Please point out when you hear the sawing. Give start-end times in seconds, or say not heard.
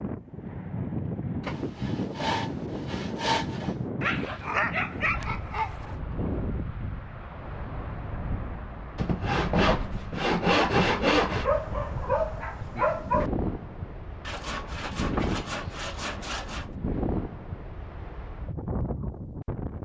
1.4-3.8, 8.9-11.5, 14.2-16.7.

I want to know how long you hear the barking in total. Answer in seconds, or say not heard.
4 s.